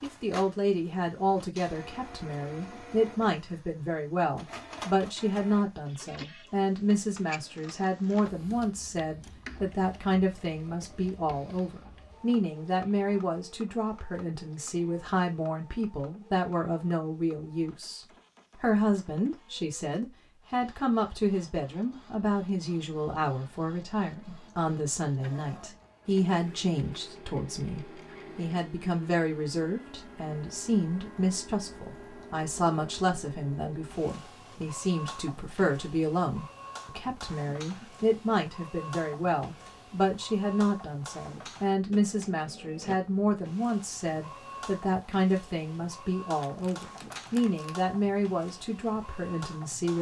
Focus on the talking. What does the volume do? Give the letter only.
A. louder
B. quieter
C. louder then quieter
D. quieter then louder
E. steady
E.